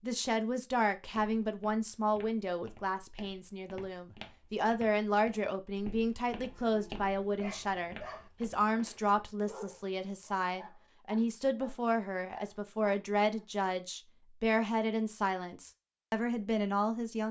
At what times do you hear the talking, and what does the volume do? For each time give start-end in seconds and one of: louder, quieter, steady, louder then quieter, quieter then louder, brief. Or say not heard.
0.0-17.2 steady.